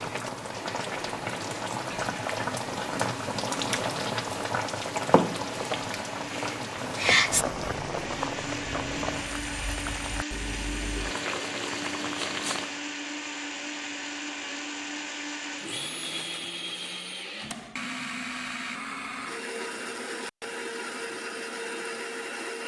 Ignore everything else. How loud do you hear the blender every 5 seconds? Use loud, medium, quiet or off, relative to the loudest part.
medium, loud, loud, loud, loud.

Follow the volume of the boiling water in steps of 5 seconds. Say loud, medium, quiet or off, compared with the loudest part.
loud, loud, medium, off, off.